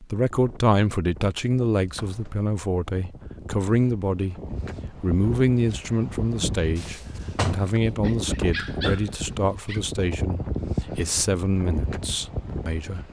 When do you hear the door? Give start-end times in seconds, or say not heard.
1.7-2.4, 6.8-7.8.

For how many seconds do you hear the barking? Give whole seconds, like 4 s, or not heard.
2 s.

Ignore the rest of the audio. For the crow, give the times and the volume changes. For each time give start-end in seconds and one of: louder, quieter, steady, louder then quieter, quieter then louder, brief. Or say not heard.
not heard.